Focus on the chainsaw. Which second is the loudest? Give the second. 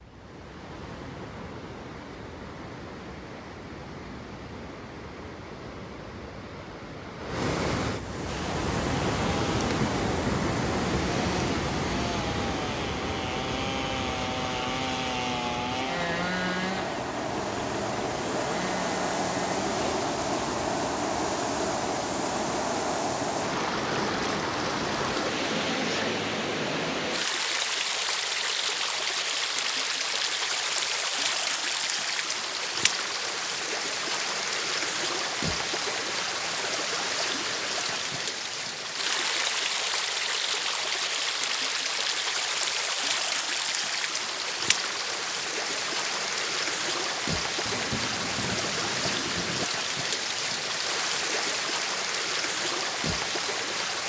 16 s.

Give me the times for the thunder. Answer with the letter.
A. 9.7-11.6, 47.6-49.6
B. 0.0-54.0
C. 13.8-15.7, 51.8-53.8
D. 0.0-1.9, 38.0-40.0
A.